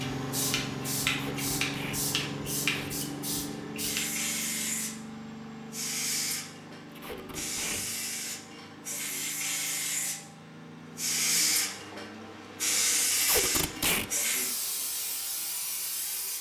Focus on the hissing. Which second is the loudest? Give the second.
13 s.